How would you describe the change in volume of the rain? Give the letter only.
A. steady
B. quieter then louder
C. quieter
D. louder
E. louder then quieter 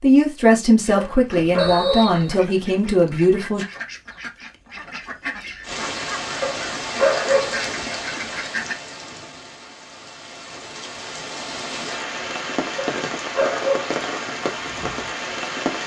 B.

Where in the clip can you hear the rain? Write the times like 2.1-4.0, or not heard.
5.6-15.8.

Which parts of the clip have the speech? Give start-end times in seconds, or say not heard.
0.0-3.6.